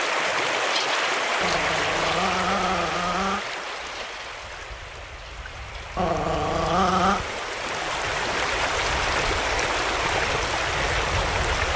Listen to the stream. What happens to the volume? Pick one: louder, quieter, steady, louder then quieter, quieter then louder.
quieter then louder.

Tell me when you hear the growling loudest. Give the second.
7 s.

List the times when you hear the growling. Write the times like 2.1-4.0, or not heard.
1.4-3.5, 6.0-7.2.